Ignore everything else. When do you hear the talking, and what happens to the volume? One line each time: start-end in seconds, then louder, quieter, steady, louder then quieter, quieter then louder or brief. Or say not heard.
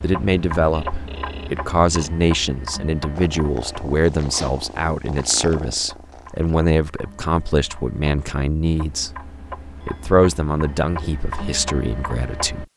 0.0-12.7 steady.